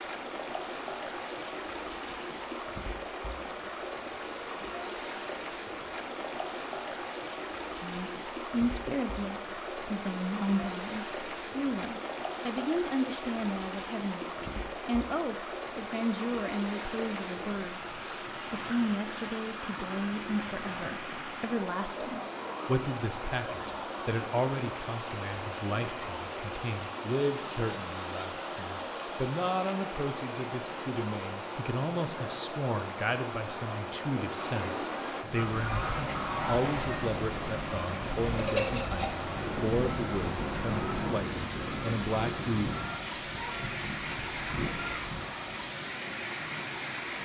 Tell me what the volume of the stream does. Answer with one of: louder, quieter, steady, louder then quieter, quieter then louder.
steady.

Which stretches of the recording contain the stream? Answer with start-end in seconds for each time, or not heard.
0.0-47.1.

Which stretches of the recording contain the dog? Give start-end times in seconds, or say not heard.
not heard.